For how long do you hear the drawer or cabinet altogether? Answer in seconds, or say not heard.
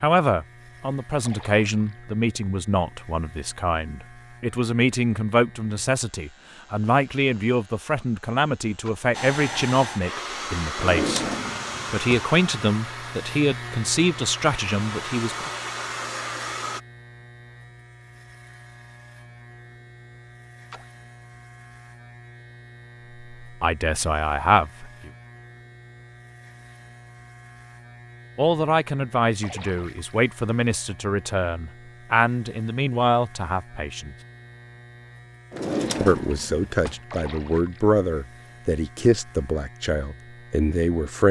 3 s.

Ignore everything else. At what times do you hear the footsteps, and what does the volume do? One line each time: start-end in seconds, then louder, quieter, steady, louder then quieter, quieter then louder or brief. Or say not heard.
not heard.